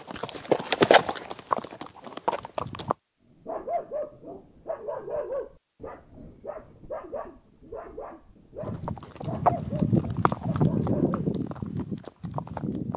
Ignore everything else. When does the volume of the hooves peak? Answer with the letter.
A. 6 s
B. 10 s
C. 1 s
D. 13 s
C.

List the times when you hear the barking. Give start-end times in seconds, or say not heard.
3.4-11.2.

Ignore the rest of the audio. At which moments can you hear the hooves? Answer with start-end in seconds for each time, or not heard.
0.0-3.0, 8.6-12.9.